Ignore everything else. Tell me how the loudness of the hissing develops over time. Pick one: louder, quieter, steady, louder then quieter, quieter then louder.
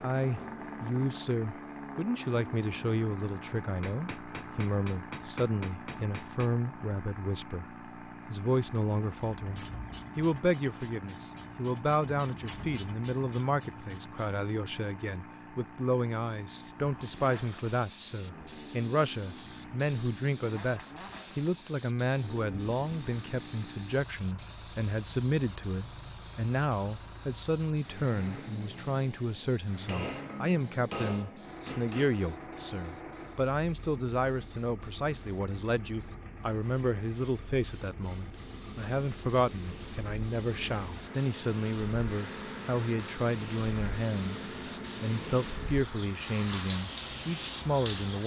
quieter then louder.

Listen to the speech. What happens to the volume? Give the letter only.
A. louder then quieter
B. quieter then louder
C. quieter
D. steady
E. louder
D.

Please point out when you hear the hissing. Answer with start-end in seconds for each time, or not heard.
16.5-48.2.